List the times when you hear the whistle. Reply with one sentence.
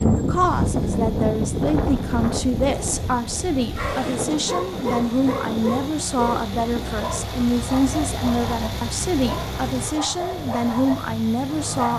The whistle can't be heard in this clip.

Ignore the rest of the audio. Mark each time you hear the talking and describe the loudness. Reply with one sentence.
The talking can be heard from 0.0 to 11.9 s, at a steady volume.